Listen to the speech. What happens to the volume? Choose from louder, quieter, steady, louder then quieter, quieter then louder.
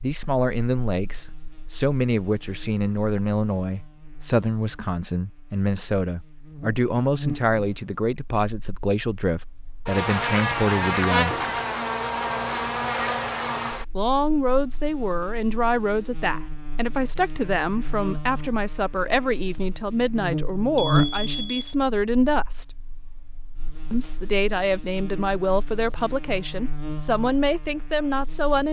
steady.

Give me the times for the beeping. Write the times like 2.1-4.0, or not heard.
20.8-21.8.